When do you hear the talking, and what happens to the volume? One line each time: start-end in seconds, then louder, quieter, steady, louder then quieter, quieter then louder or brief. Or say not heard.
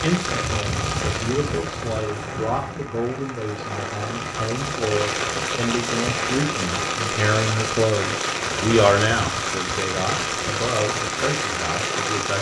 0.0-12.3 louder then quieter.